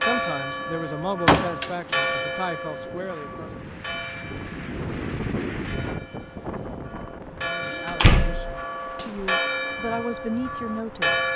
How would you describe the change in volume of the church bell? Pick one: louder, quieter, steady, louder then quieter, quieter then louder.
quieter then louder.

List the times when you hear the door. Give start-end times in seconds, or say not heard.
1.2-2.1, 7.7-9.2.